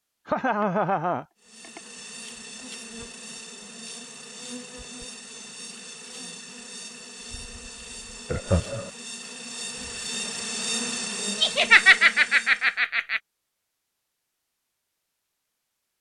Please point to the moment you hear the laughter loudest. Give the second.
12 s.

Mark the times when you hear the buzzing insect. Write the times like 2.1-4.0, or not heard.
1.4-12.8.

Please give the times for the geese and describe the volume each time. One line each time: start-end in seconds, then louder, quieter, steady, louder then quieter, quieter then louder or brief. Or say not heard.
not heard.